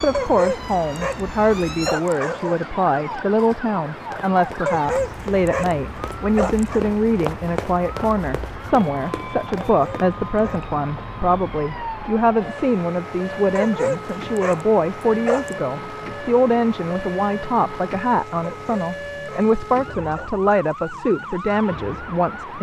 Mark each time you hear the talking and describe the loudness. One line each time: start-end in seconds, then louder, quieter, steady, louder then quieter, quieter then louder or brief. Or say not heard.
0.0-22.5 steady.